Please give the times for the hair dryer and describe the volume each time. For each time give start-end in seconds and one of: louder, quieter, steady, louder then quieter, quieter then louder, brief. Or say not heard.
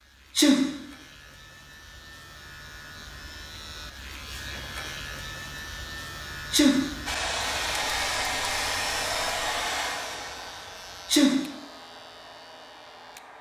7.0-13.3 quieter.